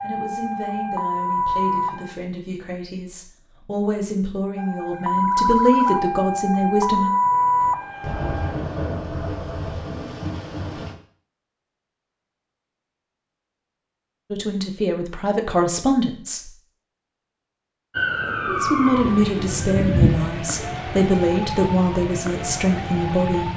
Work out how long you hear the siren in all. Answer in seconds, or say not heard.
12 s.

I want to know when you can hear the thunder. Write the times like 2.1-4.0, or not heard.
7.6-10.9.